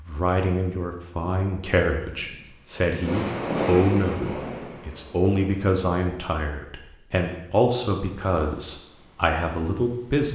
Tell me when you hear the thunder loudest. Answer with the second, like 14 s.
4 s.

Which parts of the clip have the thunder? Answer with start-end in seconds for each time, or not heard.
2.0-5.7.